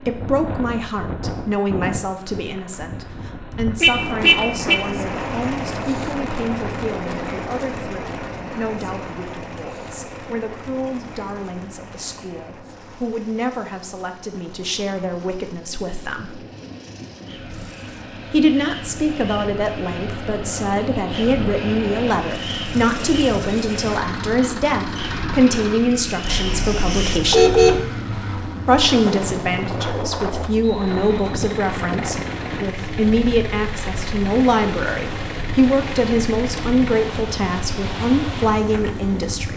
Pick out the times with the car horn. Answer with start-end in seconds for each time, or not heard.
3.8-4.8, 26.2-27.9.